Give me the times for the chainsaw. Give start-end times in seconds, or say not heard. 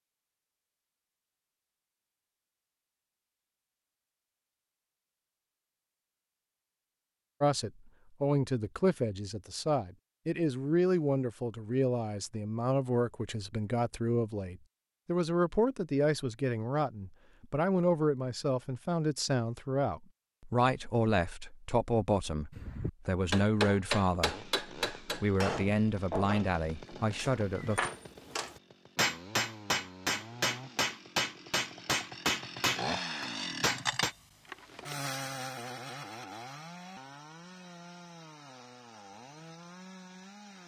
24.1-40.6.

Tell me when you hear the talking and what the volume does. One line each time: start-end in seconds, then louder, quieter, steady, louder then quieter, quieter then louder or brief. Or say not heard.
7.4-27.9 steady.